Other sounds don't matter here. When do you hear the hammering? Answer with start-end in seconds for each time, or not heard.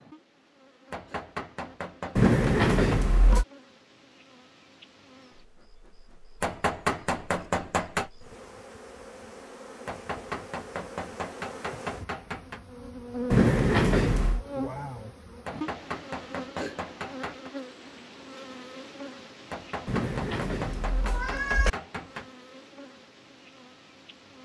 0.9-3.0, 6.4-8.1, 9.8-12.7, 15.4-17.5, 19.5-22.3.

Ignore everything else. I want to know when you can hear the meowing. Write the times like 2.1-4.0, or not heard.
2.1-3.5, 13.3-14.4, 19.9-21.7.